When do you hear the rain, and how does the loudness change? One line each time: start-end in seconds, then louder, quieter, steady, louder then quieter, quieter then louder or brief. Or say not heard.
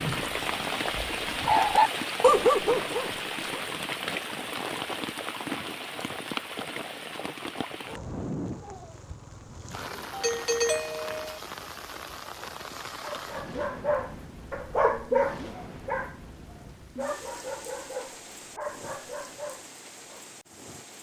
0.0-20.9 quieter.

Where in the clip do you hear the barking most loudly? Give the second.
2 s.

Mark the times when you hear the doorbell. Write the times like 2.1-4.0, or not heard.
10.1-11.4.